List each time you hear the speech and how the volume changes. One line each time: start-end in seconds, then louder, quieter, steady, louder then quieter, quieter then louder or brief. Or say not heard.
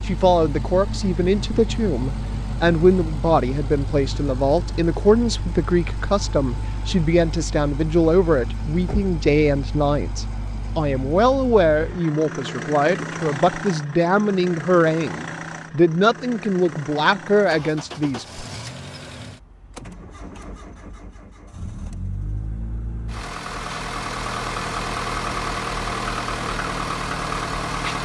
0.1-18.4 steady.